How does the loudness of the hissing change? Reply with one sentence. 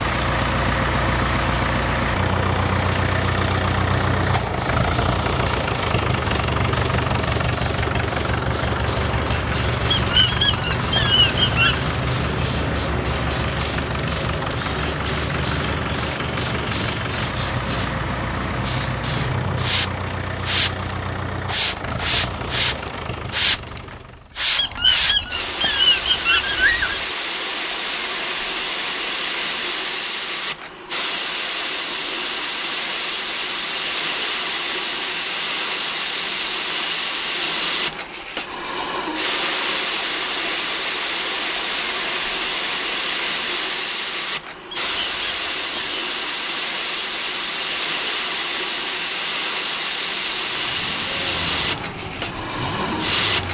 The loudness of the hissing goes up.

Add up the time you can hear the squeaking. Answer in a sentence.
The squeaking can be heard for 6 seconds in total.